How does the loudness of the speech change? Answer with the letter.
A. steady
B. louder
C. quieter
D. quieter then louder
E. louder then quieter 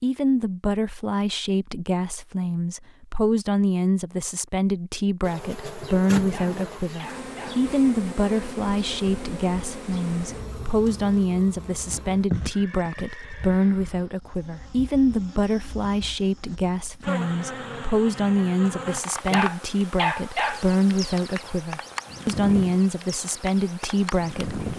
A.